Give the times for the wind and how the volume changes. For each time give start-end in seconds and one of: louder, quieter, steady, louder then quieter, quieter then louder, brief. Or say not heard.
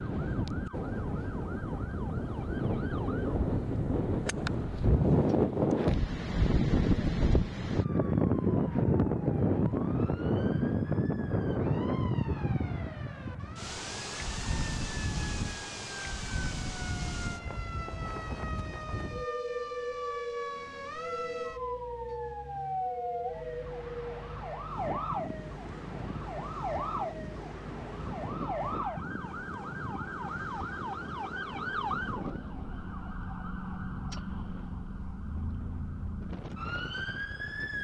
0.0-37.8 quieter.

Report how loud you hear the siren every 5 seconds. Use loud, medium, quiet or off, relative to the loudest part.
medium, quiet, medium, medium, loud, loud, loud, loud.